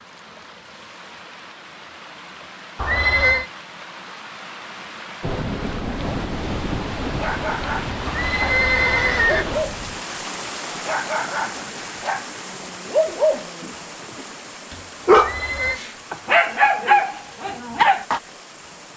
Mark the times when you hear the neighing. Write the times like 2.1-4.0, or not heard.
2.8-3.5, 8.1-9.4, 15.2-15.8.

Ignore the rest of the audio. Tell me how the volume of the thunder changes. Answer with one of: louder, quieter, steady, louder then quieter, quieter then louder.
quieter.